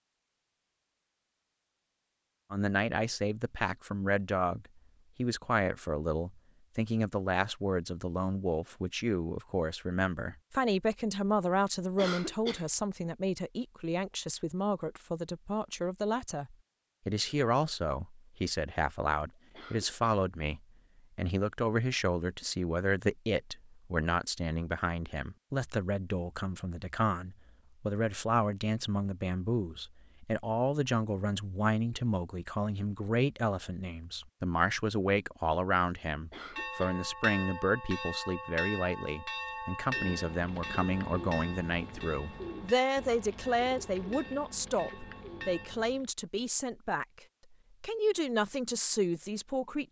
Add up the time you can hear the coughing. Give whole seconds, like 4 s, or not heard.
2 s.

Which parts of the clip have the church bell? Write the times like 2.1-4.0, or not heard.
36.5-45.9.